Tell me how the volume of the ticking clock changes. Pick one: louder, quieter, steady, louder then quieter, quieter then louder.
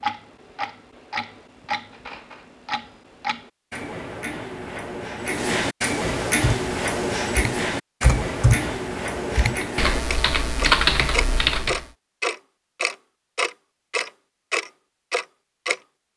louder.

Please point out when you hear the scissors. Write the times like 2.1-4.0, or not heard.
not heard.